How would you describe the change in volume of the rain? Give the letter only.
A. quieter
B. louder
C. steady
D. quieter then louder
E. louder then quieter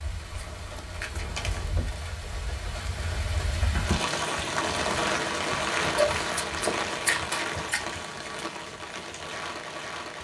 E.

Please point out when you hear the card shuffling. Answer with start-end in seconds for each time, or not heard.
0.3-1.7, 6.0-7.8.